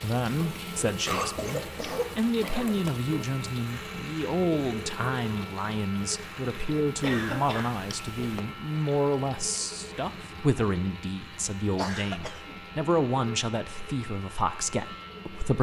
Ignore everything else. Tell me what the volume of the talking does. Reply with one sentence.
The loudness of the talking stays about the same.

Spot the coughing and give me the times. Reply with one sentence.
The coughing can be heard from 1.1 to 3.0 s, from 7.0 to 8.4 s and from 11.8 to 12.6 s.